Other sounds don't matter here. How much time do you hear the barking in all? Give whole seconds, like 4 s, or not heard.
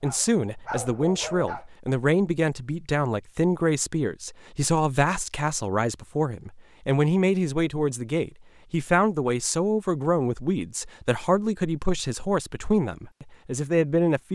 2 s.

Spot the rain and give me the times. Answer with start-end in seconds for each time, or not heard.
not heard.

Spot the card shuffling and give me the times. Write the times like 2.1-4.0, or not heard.
not heard.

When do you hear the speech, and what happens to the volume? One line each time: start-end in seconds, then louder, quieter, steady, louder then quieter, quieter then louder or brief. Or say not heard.
0.0-14.3 steady.